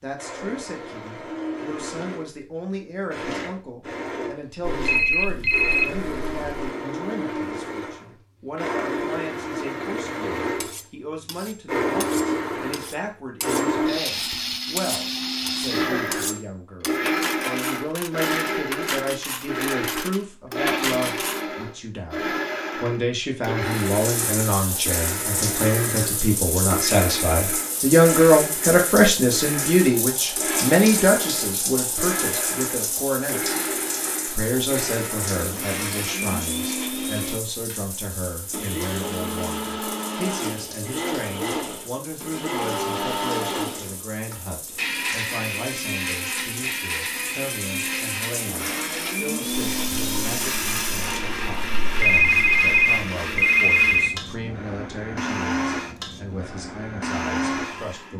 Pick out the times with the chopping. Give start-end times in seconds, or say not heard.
not heard.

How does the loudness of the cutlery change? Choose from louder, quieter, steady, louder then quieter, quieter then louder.
louder.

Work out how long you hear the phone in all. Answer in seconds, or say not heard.
4 s.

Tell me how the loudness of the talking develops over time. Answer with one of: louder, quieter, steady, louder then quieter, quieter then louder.
louder then quieter.